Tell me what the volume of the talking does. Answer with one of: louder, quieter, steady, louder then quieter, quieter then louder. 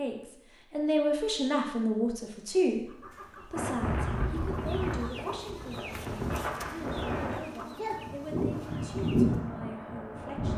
quieter.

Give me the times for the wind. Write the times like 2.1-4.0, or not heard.
3.5-10.5.